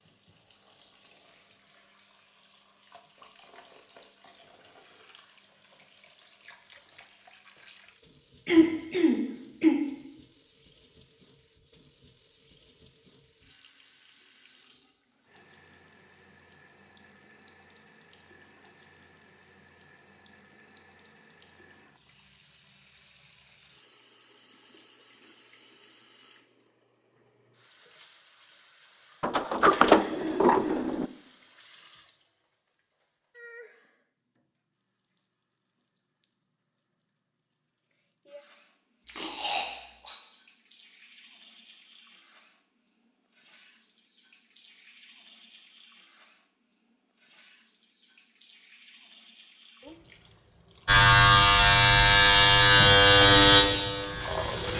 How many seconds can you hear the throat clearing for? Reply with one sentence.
The throat clearing can be heard for 4 seconds in total.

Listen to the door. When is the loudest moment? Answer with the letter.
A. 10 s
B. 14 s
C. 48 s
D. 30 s
D.